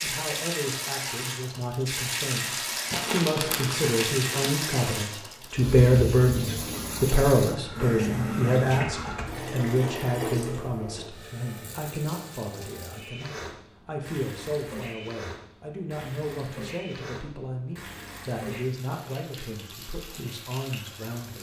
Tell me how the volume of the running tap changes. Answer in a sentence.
The loudness of the running tap goes down.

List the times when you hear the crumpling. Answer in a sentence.
You can hear the crumpling from 2.9 to 4.6 s.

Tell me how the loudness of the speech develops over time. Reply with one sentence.
The volume of the speech goes up, then down.